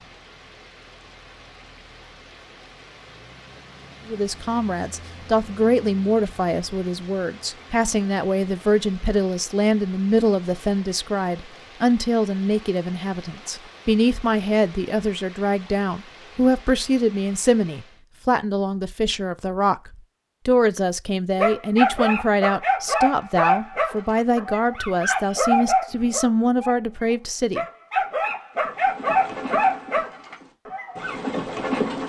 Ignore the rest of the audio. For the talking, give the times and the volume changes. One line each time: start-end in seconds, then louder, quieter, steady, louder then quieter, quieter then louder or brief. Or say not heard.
4.0-27.6 steady.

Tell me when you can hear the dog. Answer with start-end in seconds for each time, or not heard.
21.4-31.2.